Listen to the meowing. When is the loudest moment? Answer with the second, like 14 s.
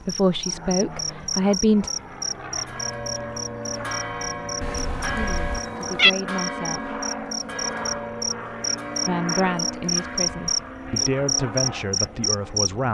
6 s.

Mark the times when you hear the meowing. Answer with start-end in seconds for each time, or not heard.
4.6-6.1.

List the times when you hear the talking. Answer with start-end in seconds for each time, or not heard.
0.0-1.9, 5.2-6.9, 9.1-12.8.